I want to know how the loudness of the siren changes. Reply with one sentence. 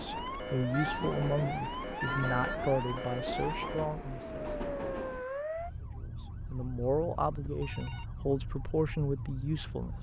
The loudness of the siren goes down.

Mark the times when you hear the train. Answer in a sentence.
The train can be heard from 0.0 to 5.2 s.